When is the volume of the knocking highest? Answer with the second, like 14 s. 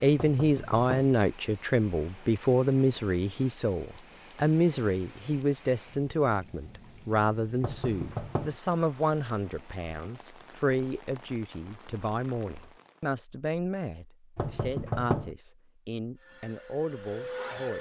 15 s.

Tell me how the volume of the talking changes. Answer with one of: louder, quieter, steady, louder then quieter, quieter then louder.
quieter.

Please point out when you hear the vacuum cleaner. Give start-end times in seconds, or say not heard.
16.1-17.7.